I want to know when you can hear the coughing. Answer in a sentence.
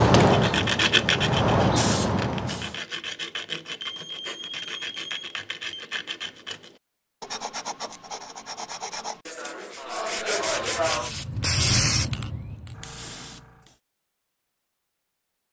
The coughing can't be heard in this clip.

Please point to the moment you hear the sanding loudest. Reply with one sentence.
The volume of the sanding peaks at 1 second.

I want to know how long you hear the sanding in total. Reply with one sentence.
The sanding can be heard for 11 seconds in total.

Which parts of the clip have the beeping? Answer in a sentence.
You can hear the beeping from 3.8 to 5.8 s.